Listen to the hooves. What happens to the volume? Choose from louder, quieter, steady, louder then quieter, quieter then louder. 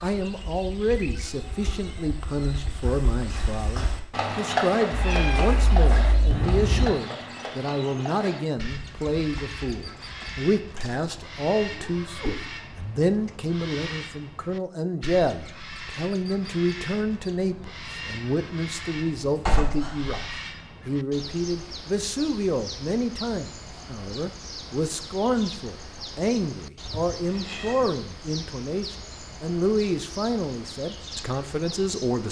louder then quieter.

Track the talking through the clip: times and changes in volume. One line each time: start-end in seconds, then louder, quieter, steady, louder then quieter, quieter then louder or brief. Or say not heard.
0.0-32.2 steady.